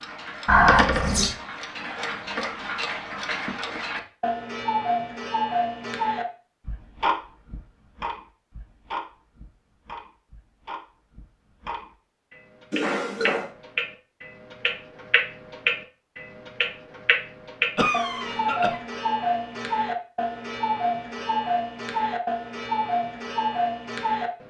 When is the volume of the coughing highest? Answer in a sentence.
The volume of the coughing peaks at 1 second.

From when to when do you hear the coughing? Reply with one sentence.
You can hear the coughing from 0.5 to 1.4 s, from 12.7 to 13.5 s and from 17.8 to 18.8 s.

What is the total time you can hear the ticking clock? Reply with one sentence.
The ticking clock can be heard for 24 seconds in total.